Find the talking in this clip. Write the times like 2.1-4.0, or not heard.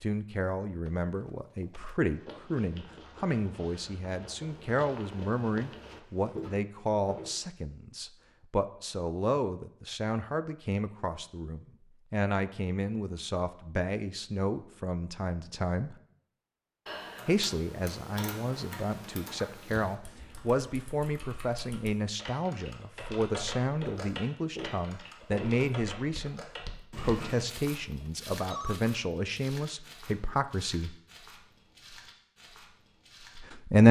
0.0-15.9, 17.2-30.9, 33.4-33.8.